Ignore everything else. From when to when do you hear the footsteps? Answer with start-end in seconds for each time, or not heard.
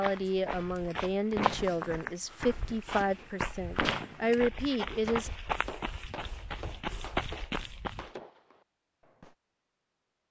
0.0-8.1.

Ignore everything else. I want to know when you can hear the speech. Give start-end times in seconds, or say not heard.
0.0-5.3.